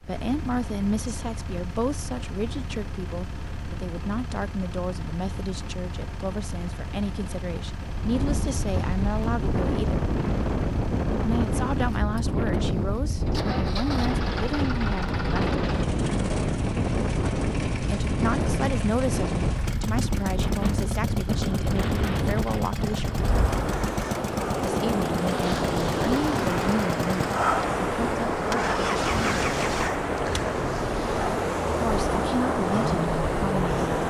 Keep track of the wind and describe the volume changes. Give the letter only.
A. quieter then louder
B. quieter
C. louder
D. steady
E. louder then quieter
D.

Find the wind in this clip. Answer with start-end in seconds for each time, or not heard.
7.8-34.0.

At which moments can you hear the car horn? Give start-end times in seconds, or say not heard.
not heard.